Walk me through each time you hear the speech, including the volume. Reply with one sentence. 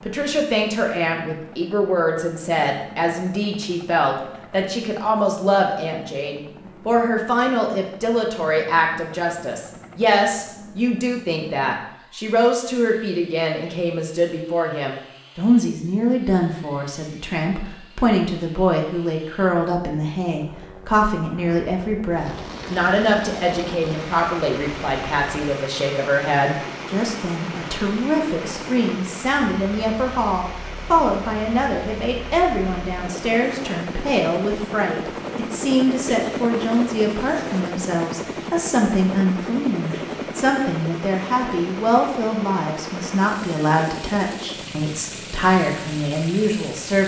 The speech can be heard from 0.0 to 47.0 s, at a steady volume.